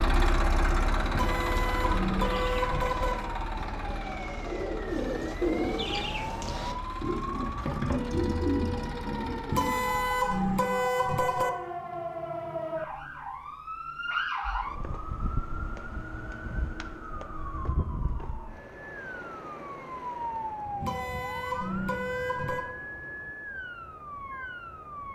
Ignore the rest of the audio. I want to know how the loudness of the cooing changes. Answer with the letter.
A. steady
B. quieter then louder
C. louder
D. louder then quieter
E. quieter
C.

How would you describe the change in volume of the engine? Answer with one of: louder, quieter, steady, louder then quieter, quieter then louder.
quieter.